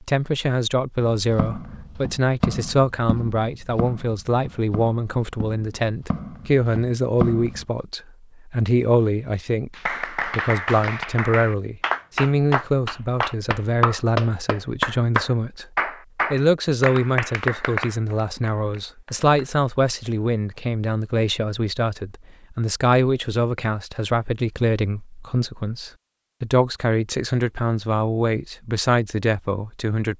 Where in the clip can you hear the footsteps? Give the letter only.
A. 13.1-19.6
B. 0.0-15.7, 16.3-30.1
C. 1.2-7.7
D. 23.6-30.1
C.